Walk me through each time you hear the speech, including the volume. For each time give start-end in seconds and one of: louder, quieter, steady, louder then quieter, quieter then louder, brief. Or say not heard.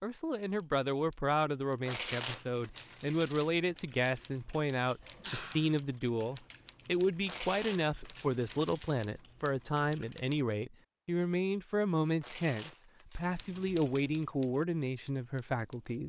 0.0-16.0 steady.